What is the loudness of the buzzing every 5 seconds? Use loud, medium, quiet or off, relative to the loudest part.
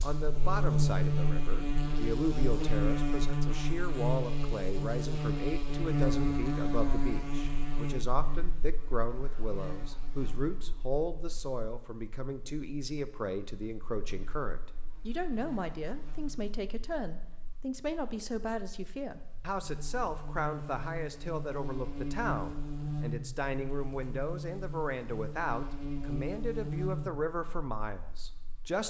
loud, loud, quiet, quiet, medium, medium.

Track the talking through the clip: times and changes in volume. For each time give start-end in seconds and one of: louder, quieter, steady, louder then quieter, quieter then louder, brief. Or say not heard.
0.0-28.8 steady.